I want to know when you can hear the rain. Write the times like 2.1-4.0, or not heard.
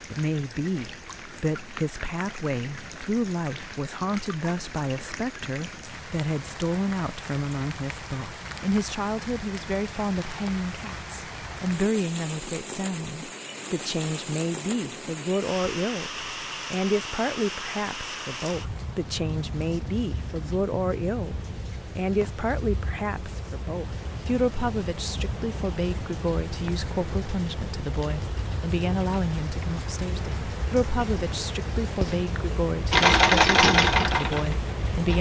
0.0-35.1.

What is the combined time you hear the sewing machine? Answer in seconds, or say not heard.
2 s.